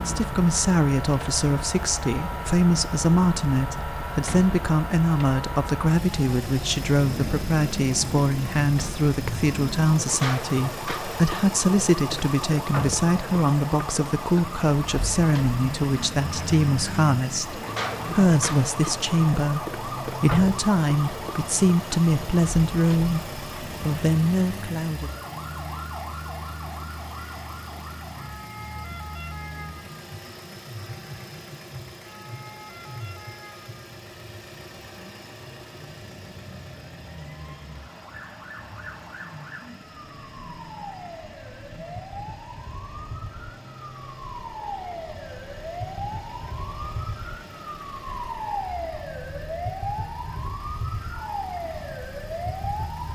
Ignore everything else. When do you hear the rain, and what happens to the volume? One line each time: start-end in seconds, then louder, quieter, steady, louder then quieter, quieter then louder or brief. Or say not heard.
not heard.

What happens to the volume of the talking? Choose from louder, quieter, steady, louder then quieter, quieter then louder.
steady.